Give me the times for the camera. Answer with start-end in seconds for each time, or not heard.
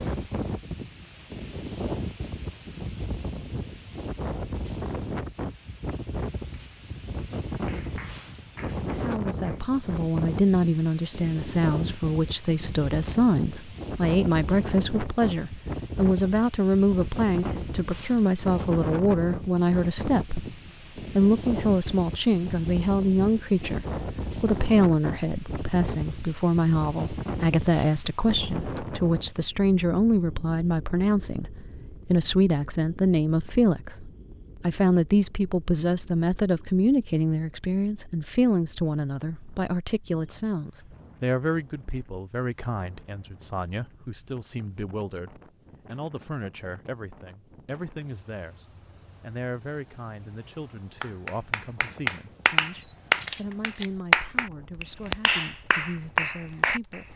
52.6-54.0.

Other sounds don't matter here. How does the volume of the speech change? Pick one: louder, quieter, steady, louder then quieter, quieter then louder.
quieter.